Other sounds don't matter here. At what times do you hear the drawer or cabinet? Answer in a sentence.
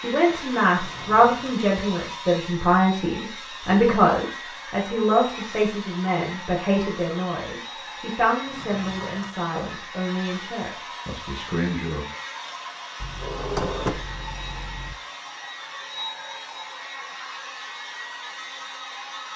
You can hear the drawer or cabinet from 0.7 to 1.6 s, from 8.4 to 9.3 s and from 13.0 to 14.9 s.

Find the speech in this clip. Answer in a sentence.
You can hear the speech from 0.0 to 12.1 s.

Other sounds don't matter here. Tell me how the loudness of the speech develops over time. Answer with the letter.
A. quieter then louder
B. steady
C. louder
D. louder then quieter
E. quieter
E.